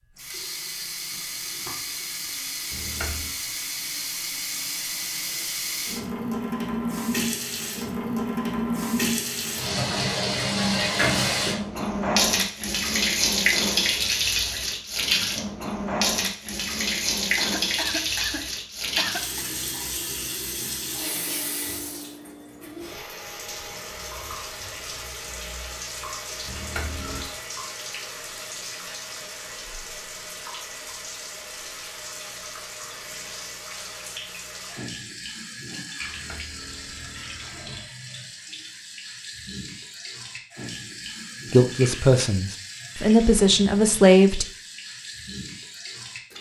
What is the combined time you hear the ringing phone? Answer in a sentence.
You can hear the ringing phone for 3 seconds altogether.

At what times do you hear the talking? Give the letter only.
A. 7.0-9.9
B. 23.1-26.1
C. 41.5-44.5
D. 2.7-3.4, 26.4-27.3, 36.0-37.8
C.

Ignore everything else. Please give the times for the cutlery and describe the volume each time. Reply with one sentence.
You can't hear the cutlery here.